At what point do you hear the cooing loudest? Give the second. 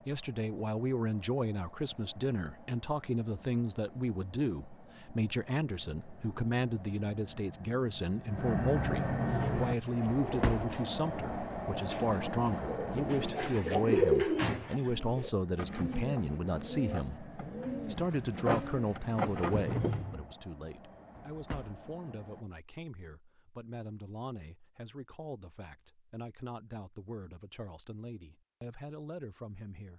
14 s.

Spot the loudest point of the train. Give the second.
9 s.